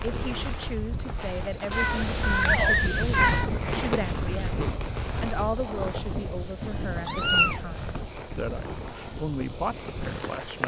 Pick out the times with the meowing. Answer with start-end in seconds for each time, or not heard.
1.7-3.5, 6.6-7.6.